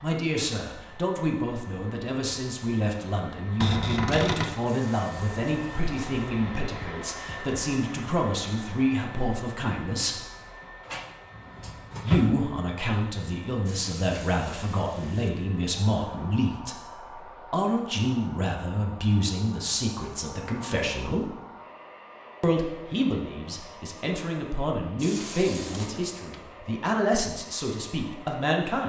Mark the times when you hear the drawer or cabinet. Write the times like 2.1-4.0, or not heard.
3.6-4.5, 10.8-12.4, 25.5-26.4.